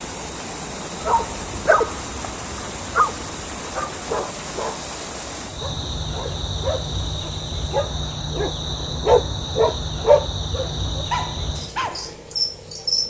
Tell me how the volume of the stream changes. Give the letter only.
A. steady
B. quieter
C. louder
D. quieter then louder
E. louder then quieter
B.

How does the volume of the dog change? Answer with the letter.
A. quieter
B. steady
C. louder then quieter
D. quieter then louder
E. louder
D.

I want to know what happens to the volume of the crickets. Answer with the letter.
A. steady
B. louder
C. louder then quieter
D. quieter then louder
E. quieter
B.